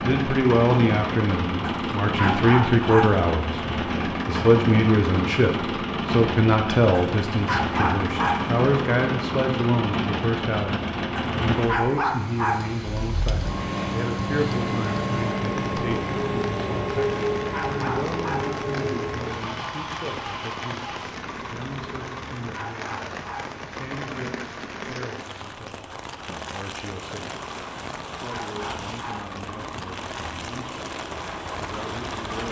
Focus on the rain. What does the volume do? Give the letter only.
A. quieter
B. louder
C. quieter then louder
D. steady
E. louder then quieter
D.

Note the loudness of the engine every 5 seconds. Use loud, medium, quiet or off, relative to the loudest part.
loud, loud, loud, loud, medium, quiet, medium.